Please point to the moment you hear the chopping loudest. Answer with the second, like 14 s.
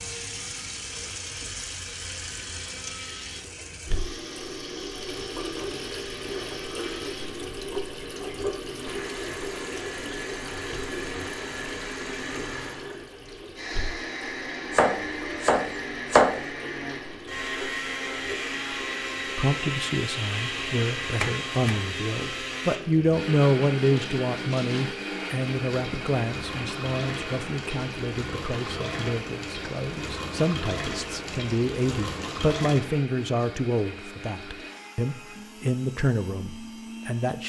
16 s.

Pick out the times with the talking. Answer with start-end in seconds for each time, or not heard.
19.4-37.4.